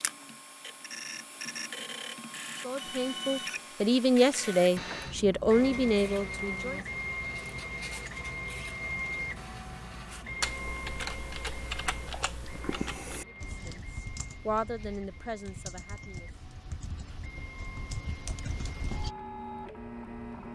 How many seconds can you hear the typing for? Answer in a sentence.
You can hear the typing for 9 seconds altogether.